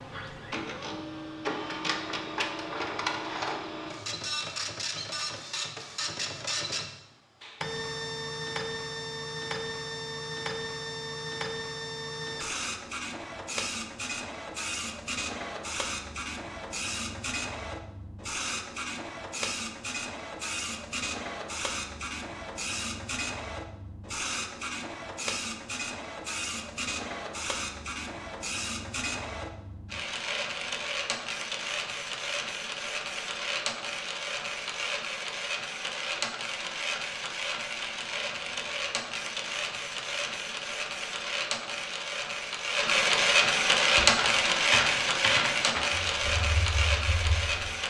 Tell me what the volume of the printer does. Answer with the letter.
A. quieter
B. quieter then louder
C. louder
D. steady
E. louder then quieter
C.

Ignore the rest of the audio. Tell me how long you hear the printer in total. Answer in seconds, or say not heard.
48 s.